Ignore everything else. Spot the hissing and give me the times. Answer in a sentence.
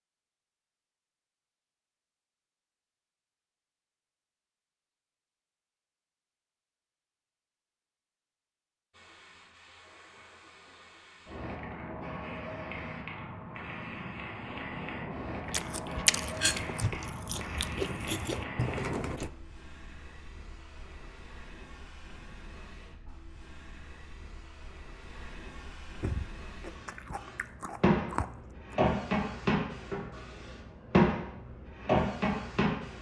The hissing can be heard from 8.9 to 32.9 s.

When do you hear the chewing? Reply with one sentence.
The chewing can be heard from 15.4 to 19.3 s and from 26.0 to 28.8 s.